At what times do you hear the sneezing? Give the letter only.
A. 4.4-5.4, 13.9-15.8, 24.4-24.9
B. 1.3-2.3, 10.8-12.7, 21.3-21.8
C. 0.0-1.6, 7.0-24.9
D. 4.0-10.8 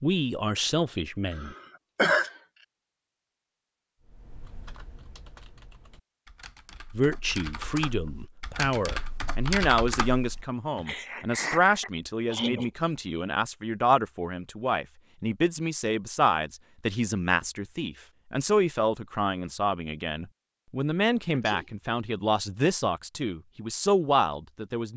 B.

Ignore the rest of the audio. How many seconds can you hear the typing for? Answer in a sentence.
You can hear the typing for 7 seconds altogether.